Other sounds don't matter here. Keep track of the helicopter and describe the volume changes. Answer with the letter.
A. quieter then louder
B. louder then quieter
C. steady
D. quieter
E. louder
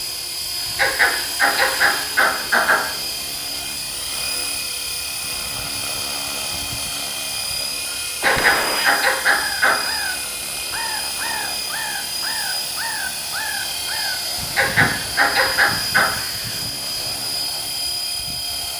C.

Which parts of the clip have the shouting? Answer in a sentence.
The shouting can't be heard in this clip.